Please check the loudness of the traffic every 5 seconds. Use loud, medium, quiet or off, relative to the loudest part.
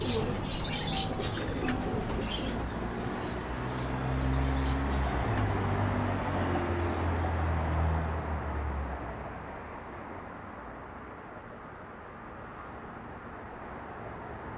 loud, loud, medium.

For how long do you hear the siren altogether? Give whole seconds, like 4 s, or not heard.
not heard.